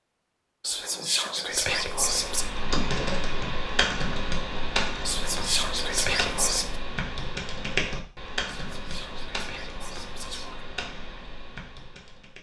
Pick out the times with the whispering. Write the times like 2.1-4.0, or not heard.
0.6-2.5, 5.0-6.8, 8.4-10.6.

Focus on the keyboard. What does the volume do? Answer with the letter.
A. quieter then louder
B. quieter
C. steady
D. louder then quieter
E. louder
B.